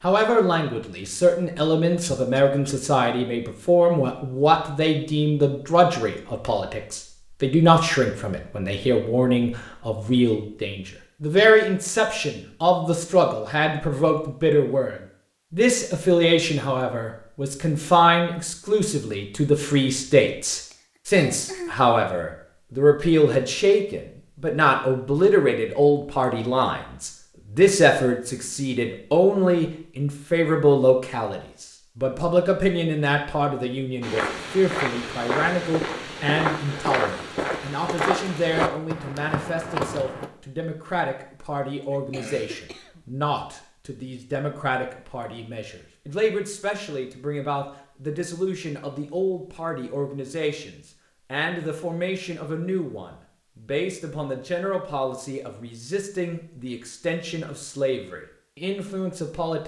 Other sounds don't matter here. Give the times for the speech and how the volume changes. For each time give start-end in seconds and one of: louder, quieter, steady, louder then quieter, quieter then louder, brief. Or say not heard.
0.0-59.6 quieter.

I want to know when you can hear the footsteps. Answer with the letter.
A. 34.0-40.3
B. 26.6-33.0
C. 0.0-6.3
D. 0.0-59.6
A.